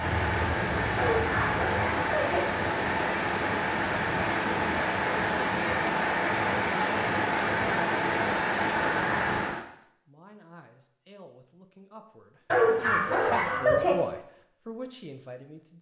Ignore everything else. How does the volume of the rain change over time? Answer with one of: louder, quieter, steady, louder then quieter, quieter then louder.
steady.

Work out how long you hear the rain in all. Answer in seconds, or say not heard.
10 s.